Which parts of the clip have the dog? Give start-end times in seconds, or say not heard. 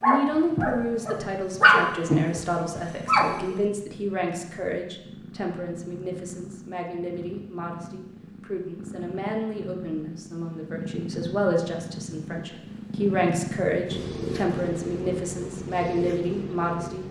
0.0-3.6.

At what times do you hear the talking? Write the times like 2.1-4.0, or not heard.
0.0-17.0.